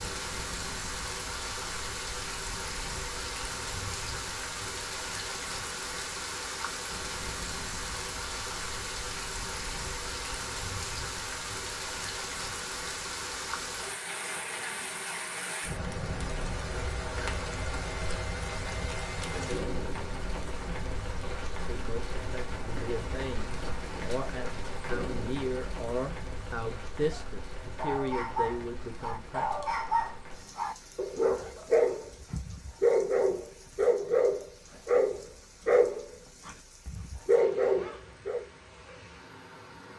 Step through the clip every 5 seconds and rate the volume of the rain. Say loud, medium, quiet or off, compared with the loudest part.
loud, loud, loud, loud, loud, medium, quiet, quiet.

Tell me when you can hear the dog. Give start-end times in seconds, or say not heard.
27.1-38.5.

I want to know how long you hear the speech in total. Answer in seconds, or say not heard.
8 s.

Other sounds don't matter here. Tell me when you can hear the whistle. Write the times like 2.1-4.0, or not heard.
not heard.